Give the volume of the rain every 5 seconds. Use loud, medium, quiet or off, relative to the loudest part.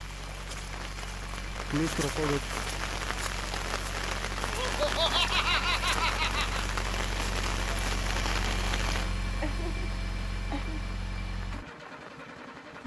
loud, loud, quiet.